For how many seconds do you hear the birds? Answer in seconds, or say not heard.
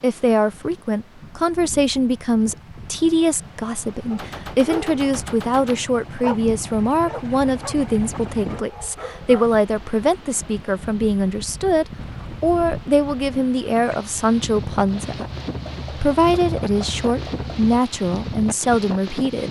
not heard.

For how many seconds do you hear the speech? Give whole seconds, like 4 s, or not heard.
19 s.